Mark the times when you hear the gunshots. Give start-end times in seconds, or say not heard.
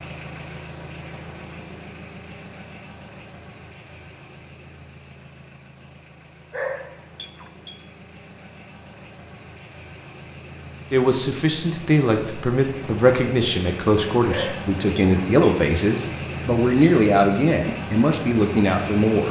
not heard.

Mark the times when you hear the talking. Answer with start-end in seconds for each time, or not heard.
10.9-19.2.